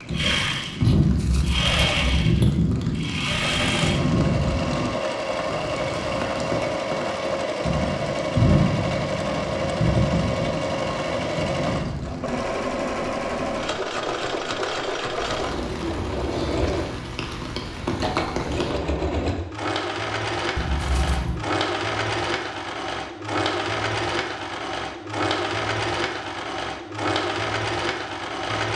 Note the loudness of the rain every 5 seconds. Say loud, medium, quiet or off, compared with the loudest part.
loud, loud, medium, medium, off, off.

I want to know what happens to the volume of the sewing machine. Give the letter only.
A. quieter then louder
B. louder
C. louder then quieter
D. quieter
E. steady
E.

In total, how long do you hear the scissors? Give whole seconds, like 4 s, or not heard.
2 s.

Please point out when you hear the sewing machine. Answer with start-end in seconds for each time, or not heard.
0.0-28.7.